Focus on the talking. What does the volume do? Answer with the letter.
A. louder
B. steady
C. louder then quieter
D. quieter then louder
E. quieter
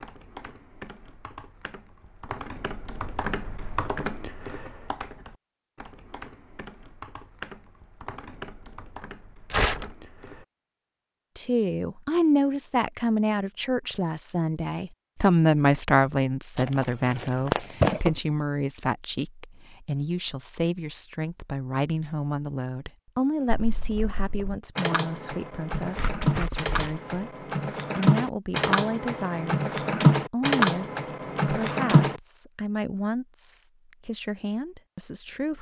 E.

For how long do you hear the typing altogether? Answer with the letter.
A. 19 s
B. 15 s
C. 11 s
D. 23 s
A.